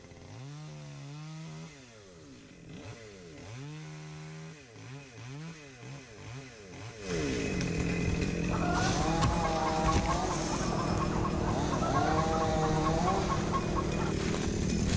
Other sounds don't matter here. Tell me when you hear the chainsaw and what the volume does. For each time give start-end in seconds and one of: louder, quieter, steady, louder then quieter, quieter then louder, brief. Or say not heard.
0.0-14.9 louder.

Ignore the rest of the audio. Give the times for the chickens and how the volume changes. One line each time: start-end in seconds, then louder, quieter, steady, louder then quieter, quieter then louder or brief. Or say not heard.
8.4-14.2 steady.